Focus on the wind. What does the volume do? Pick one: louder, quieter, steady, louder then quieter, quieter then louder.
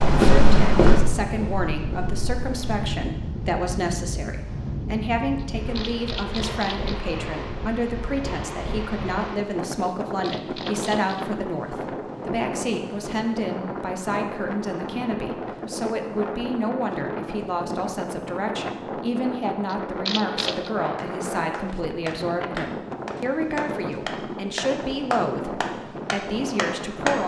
steady.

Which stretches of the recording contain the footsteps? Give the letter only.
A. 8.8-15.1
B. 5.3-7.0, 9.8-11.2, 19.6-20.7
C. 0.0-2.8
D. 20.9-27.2
C.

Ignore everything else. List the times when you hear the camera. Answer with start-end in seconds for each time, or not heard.
5.3-7.0, 9.8-11.2, 19.6-20.7.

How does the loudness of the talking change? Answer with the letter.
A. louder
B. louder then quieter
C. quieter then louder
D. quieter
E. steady
E.